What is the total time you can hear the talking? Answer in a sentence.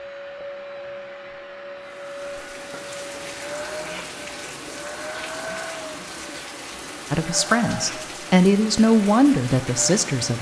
The talking can be heard for 3 seconds in total.